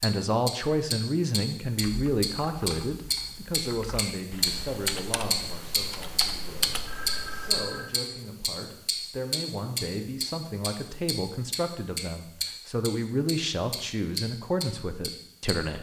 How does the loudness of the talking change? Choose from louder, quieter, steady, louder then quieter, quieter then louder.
quieter then louder.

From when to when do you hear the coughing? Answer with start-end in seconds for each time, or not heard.
not heard.